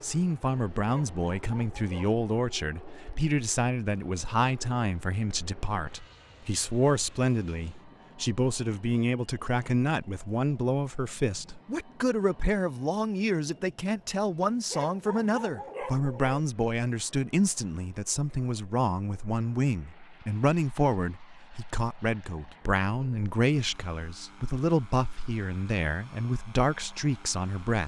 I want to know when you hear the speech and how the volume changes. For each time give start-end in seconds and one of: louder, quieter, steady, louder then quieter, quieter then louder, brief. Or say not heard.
0.0-27.8 steady.